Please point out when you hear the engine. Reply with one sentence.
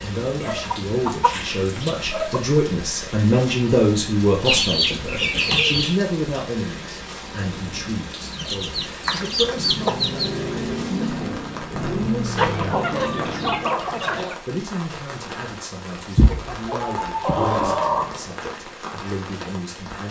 The engine can be heard from 9.4 to 13.9 s.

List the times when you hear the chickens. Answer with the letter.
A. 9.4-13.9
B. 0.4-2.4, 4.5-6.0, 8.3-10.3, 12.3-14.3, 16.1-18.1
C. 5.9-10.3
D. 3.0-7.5
B.